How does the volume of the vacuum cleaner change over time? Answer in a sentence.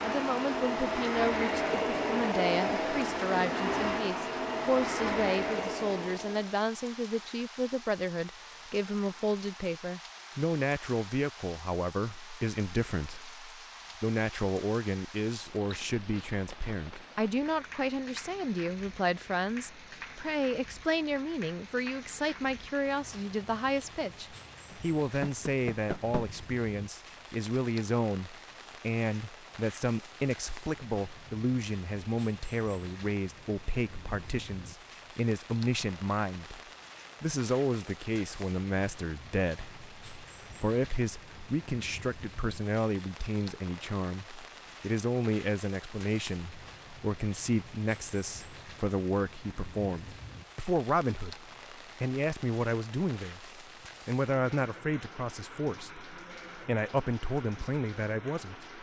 The loudness of the vacuum cleaner stays about the same.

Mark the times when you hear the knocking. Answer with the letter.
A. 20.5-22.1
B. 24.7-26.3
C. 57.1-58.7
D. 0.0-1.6
B.